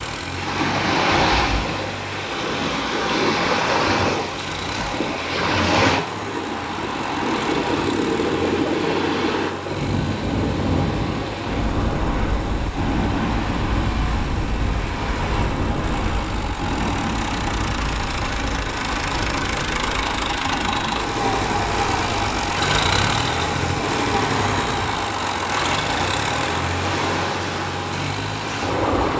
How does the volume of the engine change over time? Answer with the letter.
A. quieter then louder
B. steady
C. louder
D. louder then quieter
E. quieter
C.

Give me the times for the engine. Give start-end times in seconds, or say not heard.
0.0-29.1.